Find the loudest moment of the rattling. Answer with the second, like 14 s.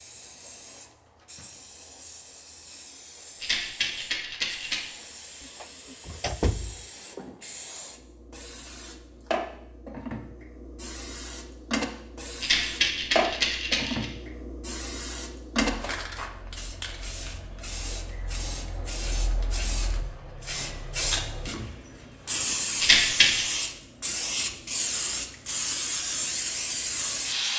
23 s.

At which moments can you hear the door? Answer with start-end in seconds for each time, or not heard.
5.4-7.2.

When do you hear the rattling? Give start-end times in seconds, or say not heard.
3.4-4.9, 12.4-14.1, 22.8-23.6.